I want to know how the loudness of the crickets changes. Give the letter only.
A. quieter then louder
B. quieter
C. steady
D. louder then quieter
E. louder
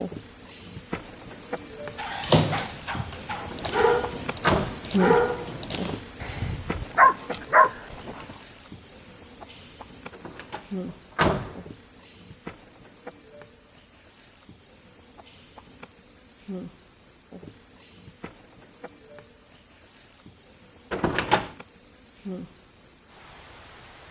B.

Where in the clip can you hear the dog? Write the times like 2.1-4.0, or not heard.
1.9-8.2.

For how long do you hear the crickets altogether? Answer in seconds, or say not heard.
24 s.